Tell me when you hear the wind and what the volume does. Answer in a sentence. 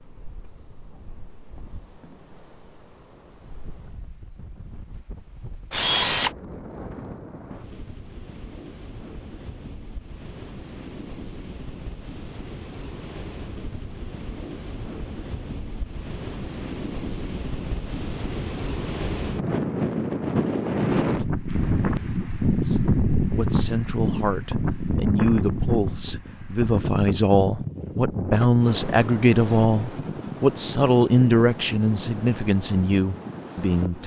You can hear the wind from 0.0 to 34.0 s, getting louder then quieter.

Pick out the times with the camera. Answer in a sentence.
The camera can be heard from 5.7 to 6.3 s.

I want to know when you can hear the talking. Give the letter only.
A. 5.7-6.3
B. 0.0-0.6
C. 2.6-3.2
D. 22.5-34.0
D.